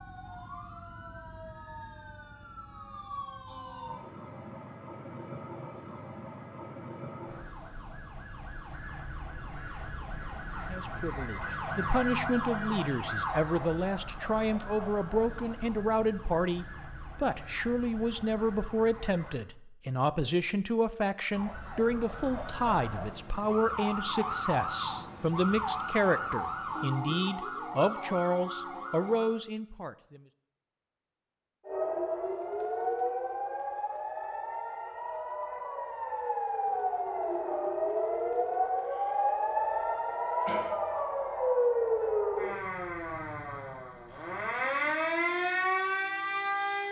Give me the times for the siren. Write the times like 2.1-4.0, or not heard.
0.0-19.4, 21.3-29.4, 31.6-46.8.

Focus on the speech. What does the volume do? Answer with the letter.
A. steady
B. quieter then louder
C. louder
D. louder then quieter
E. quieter
A.